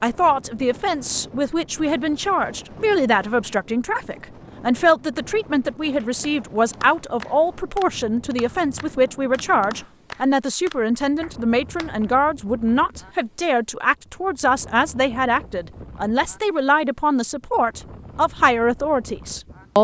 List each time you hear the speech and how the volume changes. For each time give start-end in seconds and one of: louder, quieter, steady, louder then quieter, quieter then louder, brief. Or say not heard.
0.0-19.7 steady.